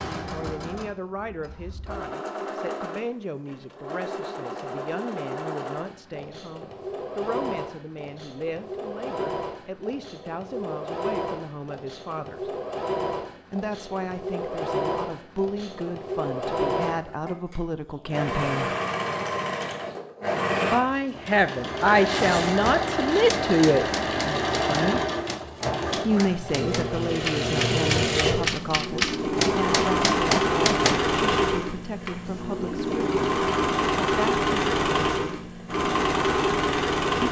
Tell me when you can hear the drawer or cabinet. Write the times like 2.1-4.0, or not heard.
not heard.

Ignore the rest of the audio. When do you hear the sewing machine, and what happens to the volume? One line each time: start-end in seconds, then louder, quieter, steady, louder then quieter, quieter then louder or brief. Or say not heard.
0.0-37.2 louder.